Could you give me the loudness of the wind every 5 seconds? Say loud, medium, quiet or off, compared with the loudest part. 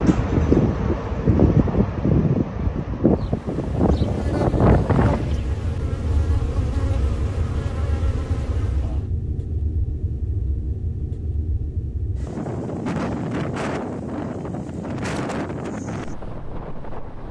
loud, medium, medium, medium.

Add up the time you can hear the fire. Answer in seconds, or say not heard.
not heard.